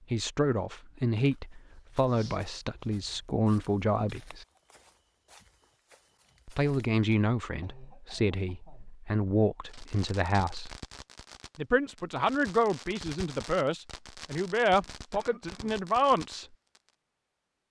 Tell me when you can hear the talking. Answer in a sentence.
You can hear the talking from 0.1 to 4.5 s, from 6.5 to 10.8 s and from 11.6 to 16.4 s.